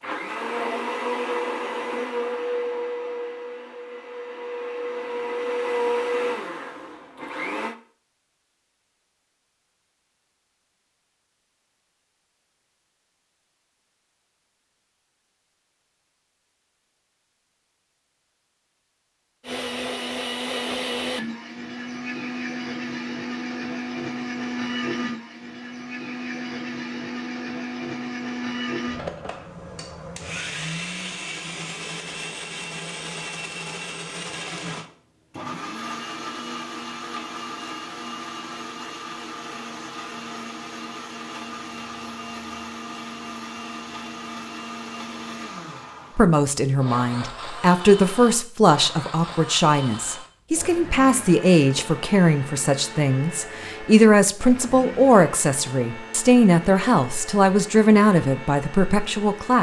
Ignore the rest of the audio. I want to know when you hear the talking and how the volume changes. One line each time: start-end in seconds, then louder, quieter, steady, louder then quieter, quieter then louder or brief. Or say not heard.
46.1-59.5 steady.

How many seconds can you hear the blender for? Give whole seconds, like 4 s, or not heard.
48 s.